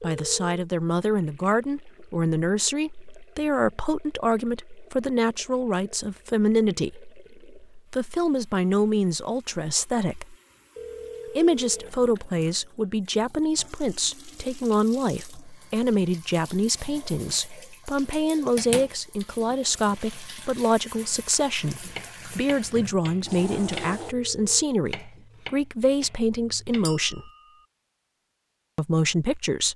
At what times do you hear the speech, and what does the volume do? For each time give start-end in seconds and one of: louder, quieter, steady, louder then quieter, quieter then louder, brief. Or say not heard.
0.0-10.3 steady
11.3-27.3 steady
28.8-29.7 brief.